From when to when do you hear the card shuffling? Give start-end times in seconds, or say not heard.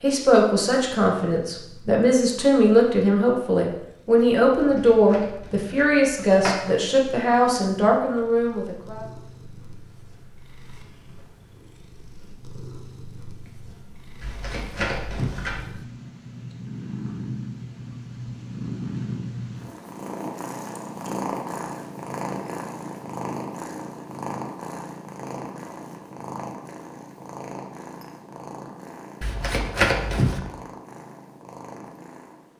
4.8-6.6, 14.2-15.7, 29.2-30.4.